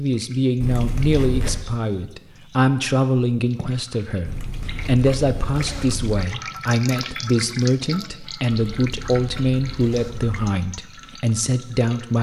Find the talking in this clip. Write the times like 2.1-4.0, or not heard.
0.0-12.1.